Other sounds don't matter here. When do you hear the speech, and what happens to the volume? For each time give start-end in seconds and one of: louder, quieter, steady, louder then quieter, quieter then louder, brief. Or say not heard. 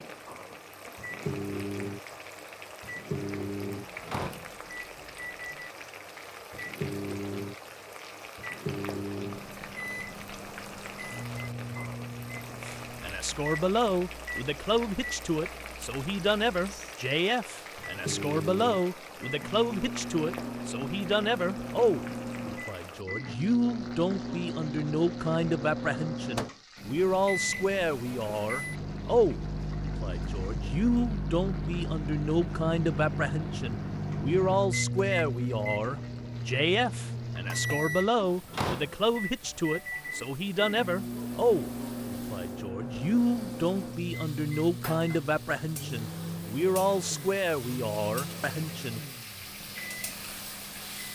12.5-49.0 steady.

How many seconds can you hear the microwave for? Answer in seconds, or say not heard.
51 s.